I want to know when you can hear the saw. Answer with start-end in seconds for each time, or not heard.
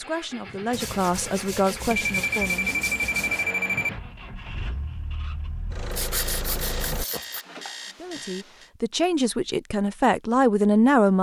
0.7-3.5, 5.9-7.5.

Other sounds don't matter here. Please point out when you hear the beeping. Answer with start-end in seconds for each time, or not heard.
2.0-3.9, 6.2-8.7.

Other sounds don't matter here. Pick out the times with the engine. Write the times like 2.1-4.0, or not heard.
0.0-7.0.